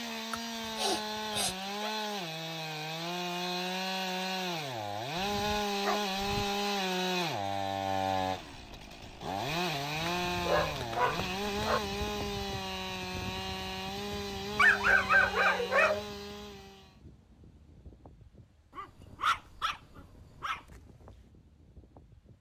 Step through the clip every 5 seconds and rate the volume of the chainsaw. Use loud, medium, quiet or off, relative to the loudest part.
loud, loud, loud, medium, off.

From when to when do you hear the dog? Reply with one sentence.
You can hear the dog from 0.3 to 1.9 s, from 5.2 to 6.6 s, from 10.1 to 11.8 s, from 14.6 to 16.1 s and from 18.8 to 20.6 s.